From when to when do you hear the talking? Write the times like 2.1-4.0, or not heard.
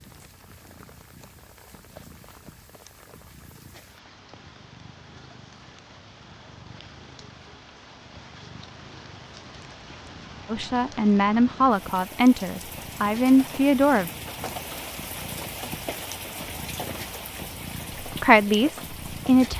10.5-14.1, 18.1-19.5.